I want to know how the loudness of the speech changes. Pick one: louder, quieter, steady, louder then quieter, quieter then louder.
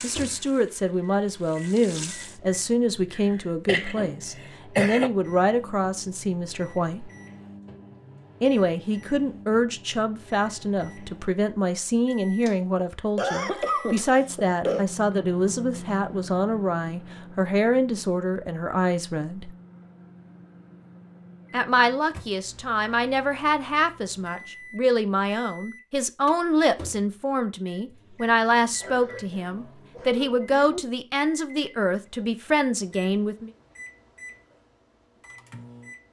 steady.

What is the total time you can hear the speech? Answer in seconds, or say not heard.
30 s.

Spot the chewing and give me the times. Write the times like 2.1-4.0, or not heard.
not heard.